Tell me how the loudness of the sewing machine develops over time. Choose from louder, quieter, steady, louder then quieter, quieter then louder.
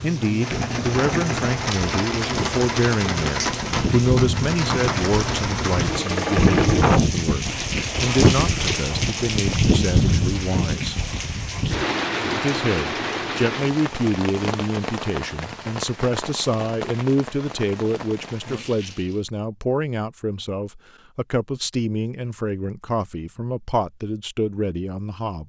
steady.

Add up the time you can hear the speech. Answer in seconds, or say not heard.
24 s.